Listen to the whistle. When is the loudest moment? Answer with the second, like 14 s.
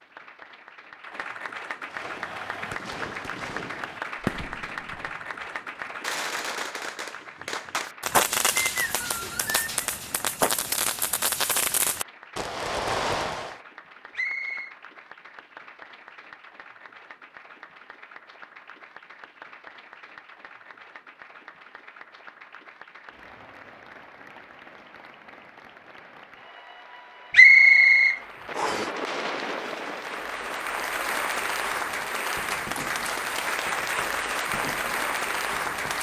28 s.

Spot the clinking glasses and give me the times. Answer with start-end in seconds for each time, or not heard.
not heard.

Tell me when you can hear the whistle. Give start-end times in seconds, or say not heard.
8.6-9.7, 14.2-14.7, 27.3-28.9.